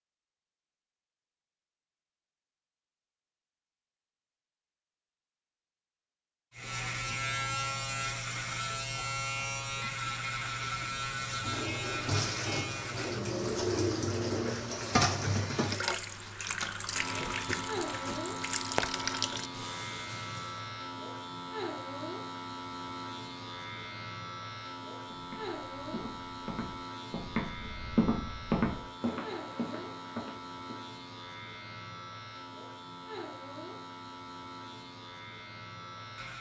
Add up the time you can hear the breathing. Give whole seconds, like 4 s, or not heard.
not heard.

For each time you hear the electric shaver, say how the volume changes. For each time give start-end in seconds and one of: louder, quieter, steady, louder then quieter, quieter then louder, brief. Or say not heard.
6.5-36.3 quieter.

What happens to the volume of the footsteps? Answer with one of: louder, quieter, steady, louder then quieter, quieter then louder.
louder then quieter.